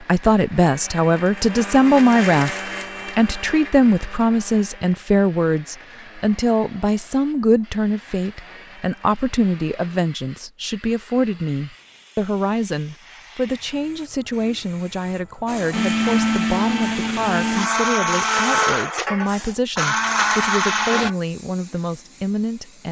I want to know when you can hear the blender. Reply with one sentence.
You can hear the blender from 0.0 to 9.9 s and from 15.4 to 21.1 s.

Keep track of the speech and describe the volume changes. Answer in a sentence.
The loudness of the speech goes down.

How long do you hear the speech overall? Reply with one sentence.
You can hear the speech for 23 seconds altogether.